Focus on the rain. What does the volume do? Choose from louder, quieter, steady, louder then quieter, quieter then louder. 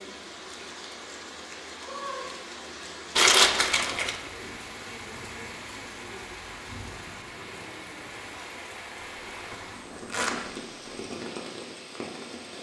steady.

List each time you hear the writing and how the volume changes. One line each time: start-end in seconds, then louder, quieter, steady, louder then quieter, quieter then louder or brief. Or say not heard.
not heard.